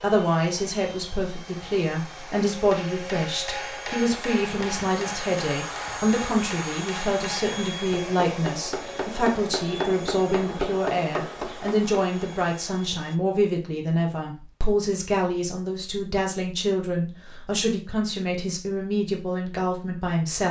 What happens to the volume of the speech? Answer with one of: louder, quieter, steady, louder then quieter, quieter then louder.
steady.